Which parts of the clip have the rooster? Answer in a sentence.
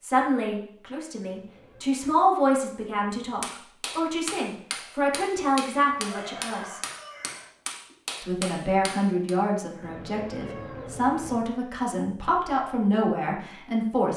You can hear the rooster from 6.0 to 8.0 s.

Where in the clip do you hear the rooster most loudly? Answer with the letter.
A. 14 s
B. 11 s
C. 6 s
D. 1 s
C.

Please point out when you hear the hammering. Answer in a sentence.
The hammering can be heard from 3.4 to 9.3 s.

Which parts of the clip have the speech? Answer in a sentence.
You can hear the speech from 0.0 to 6.8 s and from 8.2 to 14.1 s.